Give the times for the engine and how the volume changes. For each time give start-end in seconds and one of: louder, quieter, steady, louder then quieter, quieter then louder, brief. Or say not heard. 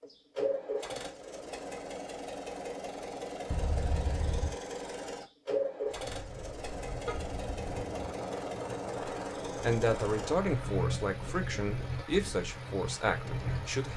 0.0-13.9 steady.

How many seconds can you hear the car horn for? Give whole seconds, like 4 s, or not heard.
2 s.